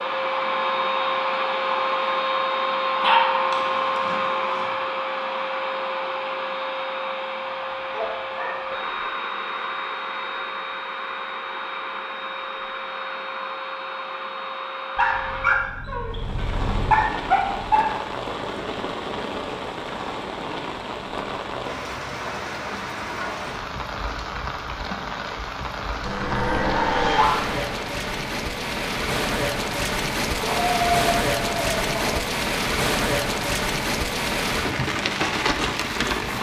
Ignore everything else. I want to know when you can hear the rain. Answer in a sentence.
You can hear the rain from 16.1 to 36.3 s.